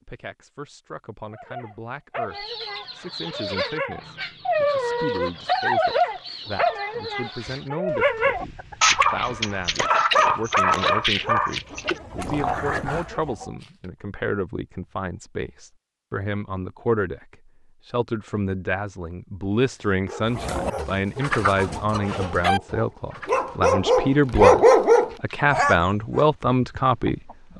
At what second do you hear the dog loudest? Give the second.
25 s.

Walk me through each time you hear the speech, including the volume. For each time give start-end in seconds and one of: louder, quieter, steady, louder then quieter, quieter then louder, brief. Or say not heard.
0.0-27.5 louder.